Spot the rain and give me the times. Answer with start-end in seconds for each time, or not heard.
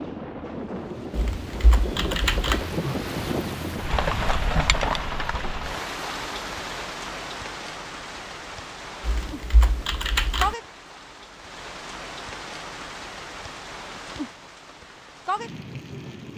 0.0-16.3.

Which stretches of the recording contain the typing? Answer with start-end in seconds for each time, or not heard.
1.1-2.6, 9.1-10.6.